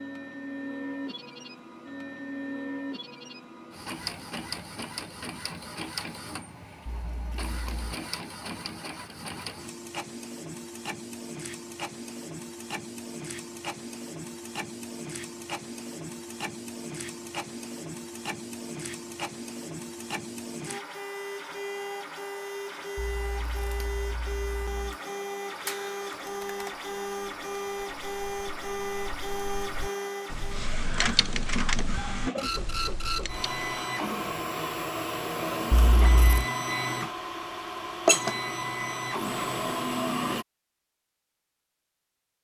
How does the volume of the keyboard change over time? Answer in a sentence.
The volume of the keyboard goes down, then up.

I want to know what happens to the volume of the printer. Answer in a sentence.
The loudness of the printer goes up.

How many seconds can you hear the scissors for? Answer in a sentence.
The scissors can be heard for 4 seconds in total.